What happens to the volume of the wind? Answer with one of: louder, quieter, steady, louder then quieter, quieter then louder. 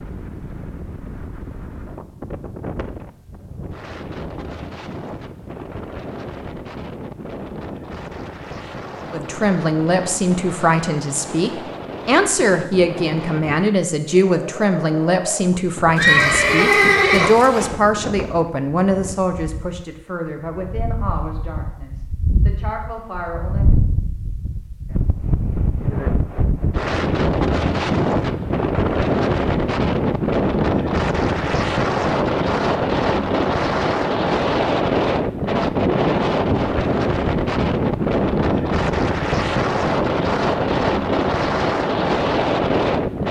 louder.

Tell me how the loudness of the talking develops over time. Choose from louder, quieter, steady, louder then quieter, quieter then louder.
quieter.